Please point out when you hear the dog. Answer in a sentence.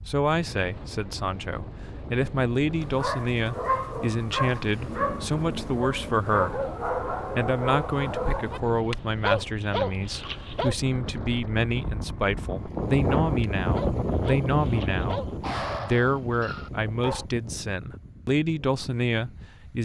The dog can be heard from 2.8 to 10.8 s and from 13.4 to 17.2 s.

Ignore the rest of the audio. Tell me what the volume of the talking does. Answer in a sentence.
The loudness of the talking stays about the same.